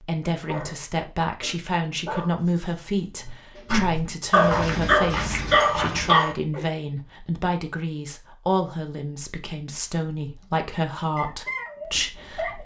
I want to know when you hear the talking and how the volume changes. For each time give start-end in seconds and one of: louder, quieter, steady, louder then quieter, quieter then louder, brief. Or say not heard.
0.0-12.6 steady.